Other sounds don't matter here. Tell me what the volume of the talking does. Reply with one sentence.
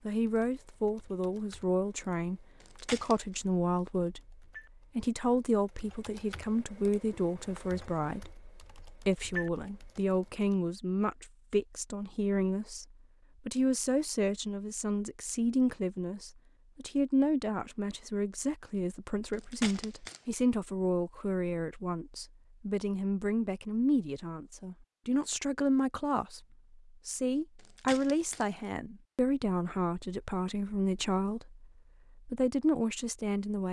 The volume of the talking stays about the same.